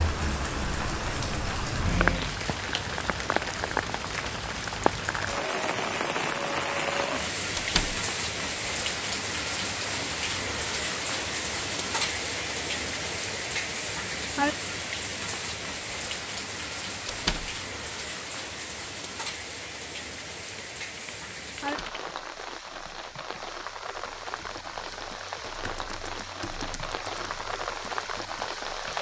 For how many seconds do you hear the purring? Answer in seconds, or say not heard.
not heard.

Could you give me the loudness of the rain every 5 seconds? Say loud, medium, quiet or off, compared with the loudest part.
loud, loud, loud, medium, medium, medium.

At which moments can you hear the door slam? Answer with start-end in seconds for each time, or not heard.
7.5-8.0, 17.1-17.6, 21.6-22.1.